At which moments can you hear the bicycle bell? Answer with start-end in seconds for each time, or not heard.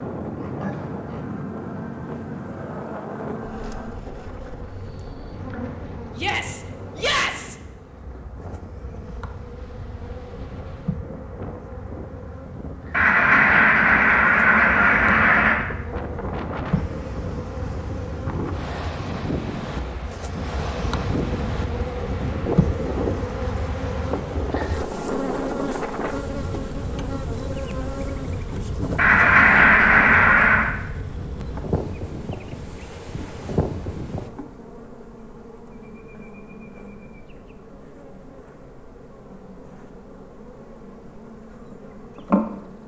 not heard.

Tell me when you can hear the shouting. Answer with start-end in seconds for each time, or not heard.
6.2-7.5.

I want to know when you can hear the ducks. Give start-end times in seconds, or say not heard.
12.9-15.6, 28.9-30.7.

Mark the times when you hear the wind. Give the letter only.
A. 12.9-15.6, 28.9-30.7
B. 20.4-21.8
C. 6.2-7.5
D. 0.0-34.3
D.